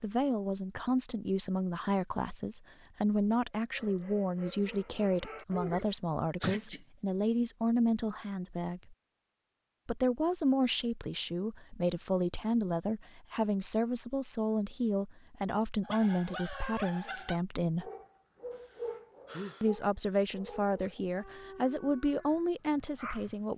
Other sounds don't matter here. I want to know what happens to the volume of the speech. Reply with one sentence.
The volume of the speech stays about the same.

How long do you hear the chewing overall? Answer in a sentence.
The chewing can't be heard in this clip.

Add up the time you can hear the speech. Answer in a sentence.
You can hear the speech for 21 seconds altogether.